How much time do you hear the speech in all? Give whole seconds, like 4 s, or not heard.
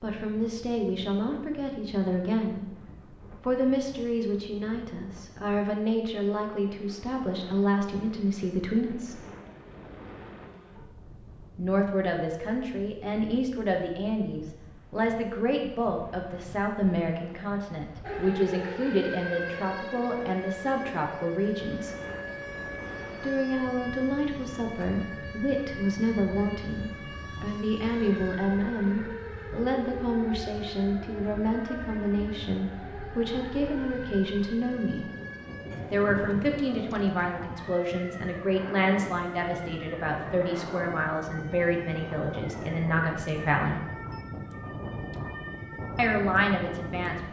40 s.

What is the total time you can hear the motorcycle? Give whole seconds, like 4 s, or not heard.
not heard.